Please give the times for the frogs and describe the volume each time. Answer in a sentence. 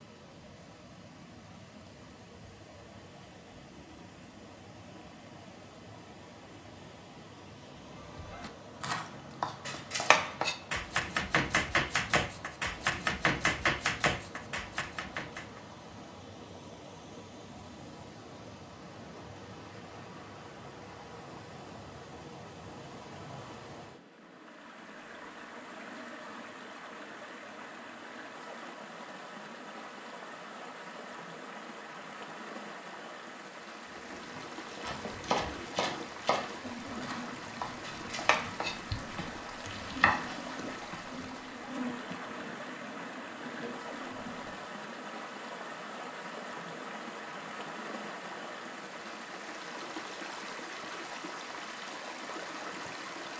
You can't hear the frogs here.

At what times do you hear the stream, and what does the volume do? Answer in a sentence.
The stream can be heard from 0.0 to 53.3 s, getting louder.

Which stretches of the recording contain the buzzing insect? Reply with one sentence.
You can hear the buzzing insect from 33.8 to 44.6 s.